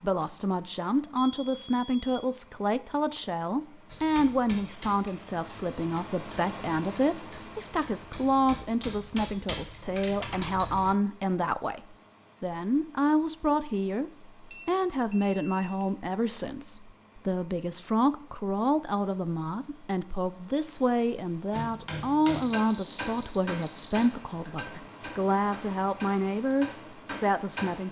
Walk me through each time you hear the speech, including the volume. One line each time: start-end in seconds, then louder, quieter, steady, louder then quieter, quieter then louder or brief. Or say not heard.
0.0-27.8 steady.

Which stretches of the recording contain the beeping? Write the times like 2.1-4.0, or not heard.
1.1-2.1, 14.5-15.8, 22.3-24.1.